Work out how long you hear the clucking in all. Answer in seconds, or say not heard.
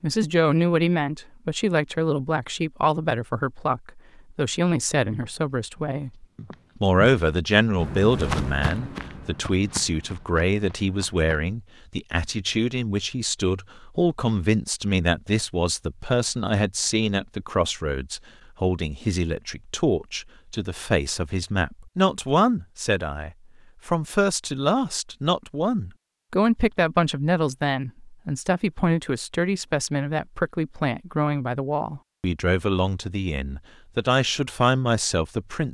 not heard.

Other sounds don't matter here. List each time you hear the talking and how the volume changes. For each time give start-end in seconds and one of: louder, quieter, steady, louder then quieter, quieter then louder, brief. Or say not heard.
0.0-35.6 steady.